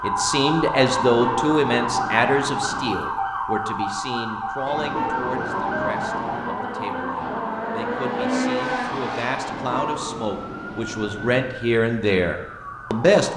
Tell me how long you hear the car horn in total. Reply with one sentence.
You can hear the car horn for 6 seconds altogether.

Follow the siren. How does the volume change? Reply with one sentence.
The volume of the siren goes down.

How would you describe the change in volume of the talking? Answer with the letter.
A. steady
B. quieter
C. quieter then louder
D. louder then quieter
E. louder
C.